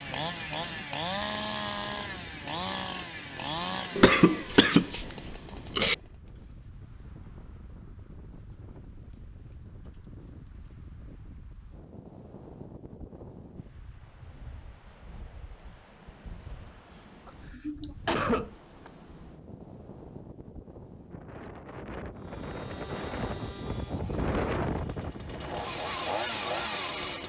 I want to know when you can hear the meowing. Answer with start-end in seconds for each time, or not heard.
not heard.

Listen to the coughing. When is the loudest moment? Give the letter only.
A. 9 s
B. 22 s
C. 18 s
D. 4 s
D.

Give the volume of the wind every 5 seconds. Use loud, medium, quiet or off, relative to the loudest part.
medium, quiet, quiet, quiet, loud, medium.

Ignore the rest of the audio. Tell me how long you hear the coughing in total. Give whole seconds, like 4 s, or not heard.
4 s.